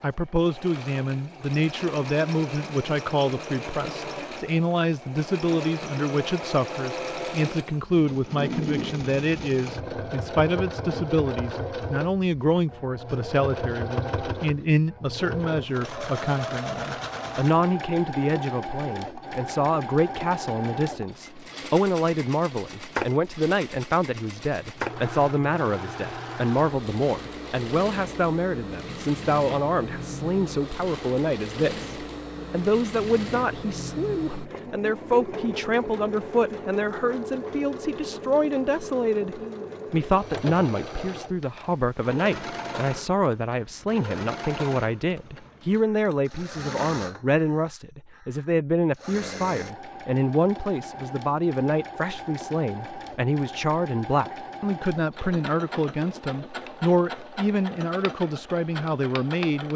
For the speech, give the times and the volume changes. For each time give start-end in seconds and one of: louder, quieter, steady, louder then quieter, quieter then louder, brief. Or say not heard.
0.0-59.7 steady.